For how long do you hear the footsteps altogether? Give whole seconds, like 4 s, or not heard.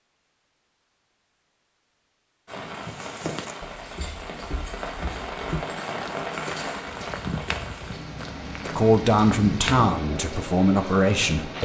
7 s.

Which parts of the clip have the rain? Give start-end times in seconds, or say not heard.
2.5-11.6.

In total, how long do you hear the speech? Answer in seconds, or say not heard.
3 s.